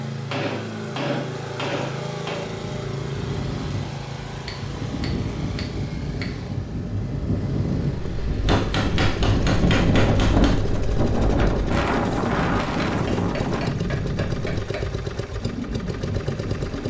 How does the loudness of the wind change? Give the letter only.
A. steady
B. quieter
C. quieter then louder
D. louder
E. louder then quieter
E.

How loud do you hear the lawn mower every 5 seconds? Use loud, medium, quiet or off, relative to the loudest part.
loud, medium, loud, loud.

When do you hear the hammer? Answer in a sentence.
The hammer can be heard from 0.3 to 2.5 s, from 4.5 to 6.5 s, from 8.4 to 10.6 s and from 12.8 to 14.9 s.